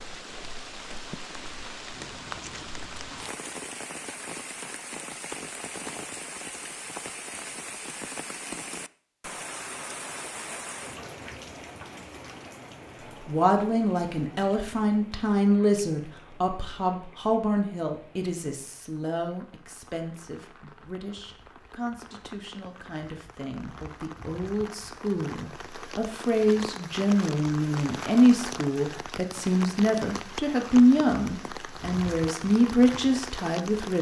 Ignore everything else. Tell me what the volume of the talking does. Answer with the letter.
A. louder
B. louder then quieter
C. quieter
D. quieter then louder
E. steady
D.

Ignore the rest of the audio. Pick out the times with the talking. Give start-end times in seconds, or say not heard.
13.2-33.9.